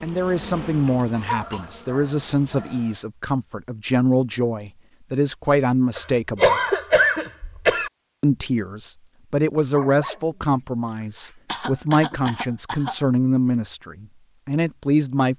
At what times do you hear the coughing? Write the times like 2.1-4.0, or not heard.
1.1-1.6, 6.0-7.9, 10.9-13.0.